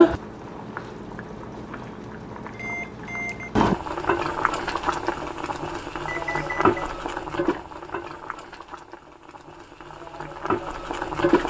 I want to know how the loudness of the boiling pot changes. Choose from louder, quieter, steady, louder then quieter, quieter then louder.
louder then quieter.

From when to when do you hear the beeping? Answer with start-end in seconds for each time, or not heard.
2.5-3.5, 6.0-6.7.